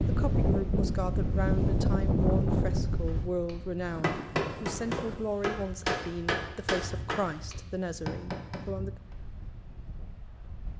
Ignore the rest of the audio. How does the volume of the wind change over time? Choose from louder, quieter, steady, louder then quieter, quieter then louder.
quieter.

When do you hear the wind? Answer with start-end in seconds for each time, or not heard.
0.0-10.7.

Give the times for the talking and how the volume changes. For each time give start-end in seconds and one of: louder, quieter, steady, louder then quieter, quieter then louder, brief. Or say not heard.
0.0-8.9 steady.